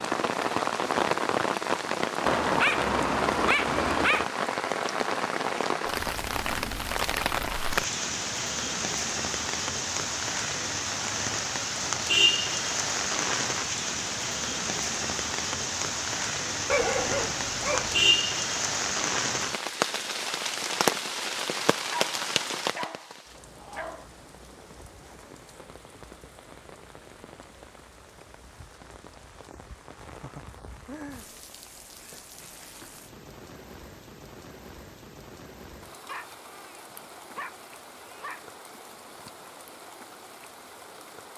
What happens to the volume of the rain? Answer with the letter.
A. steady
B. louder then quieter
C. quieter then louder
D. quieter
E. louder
D.